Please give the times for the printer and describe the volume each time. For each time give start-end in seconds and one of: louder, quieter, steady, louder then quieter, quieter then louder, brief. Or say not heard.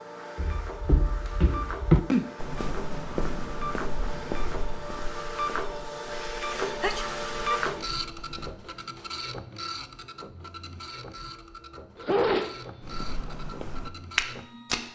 0.0-14.9 louder then quieter.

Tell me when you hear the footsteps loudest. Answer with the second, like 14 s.
2 s.